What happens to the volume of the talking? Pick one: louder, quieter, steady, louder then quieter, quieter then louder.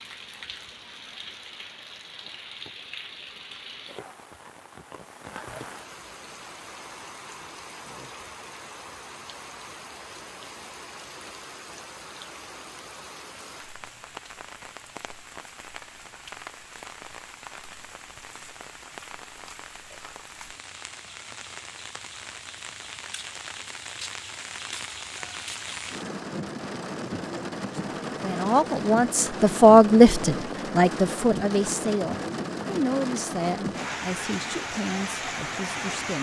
louder then quieter.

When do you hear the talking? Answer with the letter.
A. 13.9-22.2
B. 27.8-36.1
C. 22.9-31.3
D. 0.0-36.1
B.